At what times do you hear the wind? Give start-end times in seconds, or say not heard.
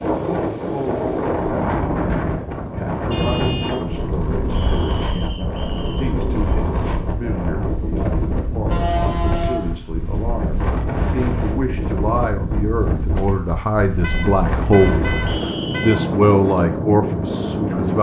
0.0-17.9.